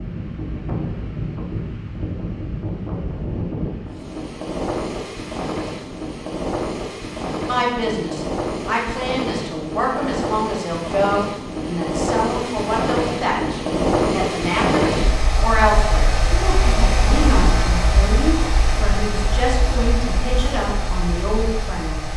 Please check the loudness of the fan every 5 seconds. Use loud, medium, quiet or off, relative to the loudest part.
medium, medium, loud, loud, medium.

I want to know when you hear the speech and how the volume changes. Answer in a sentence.
The speech can be heard from 7.5 to 22.1 s, at a steady volume.